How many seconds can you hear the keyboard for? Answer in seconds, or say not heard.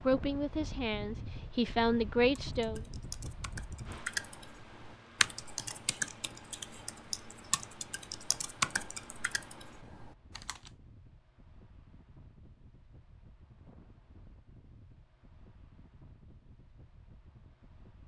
8 s.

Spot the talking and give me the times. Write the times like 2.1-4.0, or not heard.
0.0-2.8.